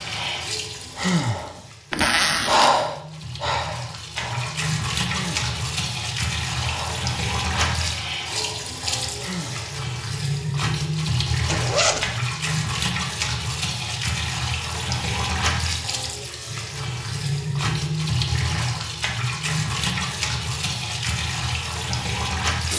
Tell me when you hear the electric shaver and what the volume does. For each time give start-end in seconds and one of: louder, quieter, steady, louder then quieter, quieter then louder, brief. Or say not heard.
not heard.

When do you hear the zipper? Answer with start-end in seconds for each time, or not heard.
1.9-2.9, 11.4-12.1.